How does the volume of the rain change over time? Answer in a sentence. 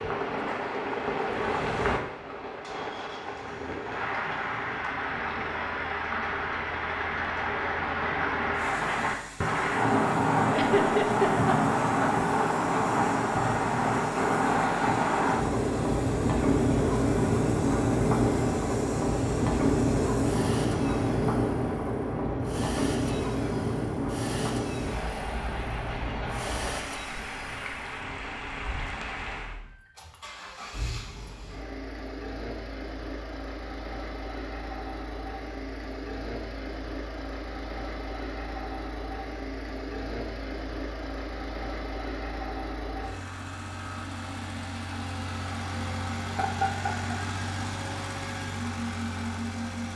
The volume of the rain goes up, then down.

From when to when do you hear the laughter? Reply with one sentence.
The laughter can be heard from 10.5 to 12.1 s and from 46.3 to 47.1 s.